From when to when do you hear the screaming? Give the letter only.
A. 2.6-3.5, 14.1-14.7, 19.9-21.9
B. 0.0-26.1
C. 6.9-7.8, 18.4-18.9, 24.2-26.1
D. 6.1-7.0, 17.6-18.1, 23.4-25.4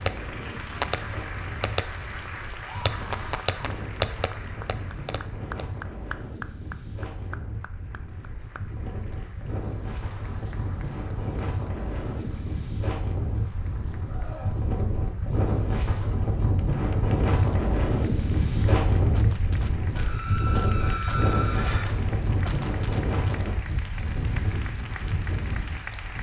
A.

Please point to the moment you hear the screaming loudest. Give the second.
21 s.